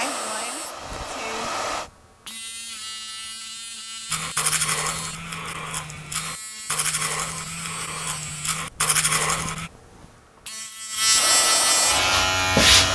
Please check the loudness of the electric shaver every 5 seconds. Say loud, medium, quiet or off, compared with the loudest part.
quiet, quiet, loud.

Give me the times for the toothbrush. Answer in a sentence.
You can hear the toothbrush from 4.1 to 9.7 s.